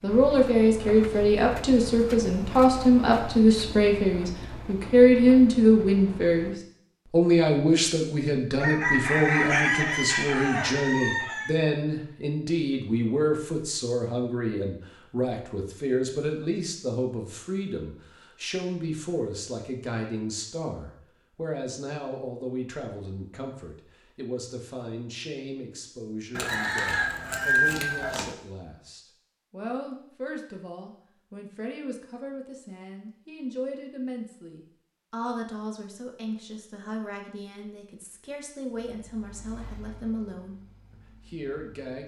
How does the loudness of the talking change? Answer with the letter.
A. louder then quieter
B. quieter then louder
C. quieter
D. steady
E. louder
C.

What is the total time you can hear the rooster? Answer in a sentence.
The rooster can be heard for 5 seconds in total.